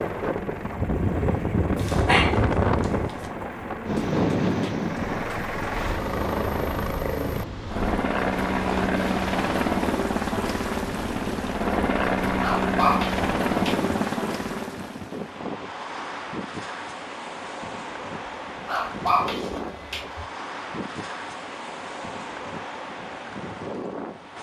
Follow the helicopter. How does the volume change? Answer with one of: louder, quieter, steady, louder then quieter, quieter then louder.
louder.